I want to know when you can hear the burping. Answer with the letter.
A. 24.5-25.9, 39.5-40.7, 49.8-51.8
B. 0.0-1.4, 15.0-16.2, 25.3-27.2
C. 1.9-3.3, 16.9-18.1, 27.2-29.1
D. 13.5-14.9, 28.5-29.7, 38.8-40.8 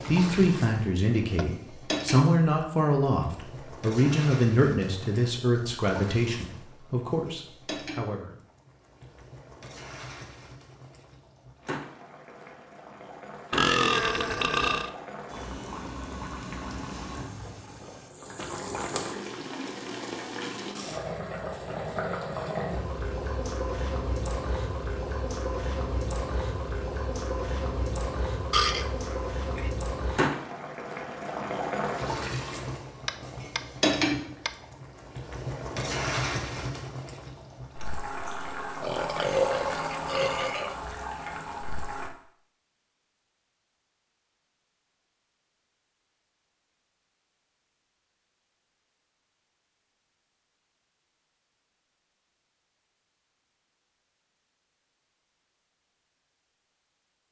D.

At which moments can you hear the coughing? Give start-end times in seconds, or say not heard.
not heard.